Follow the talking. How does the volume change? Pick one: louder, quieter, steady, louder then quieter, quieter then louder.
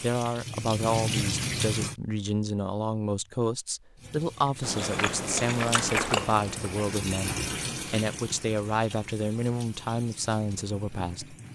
steady.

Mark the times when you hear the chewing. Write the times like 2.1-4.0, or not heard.
4.6-7.0.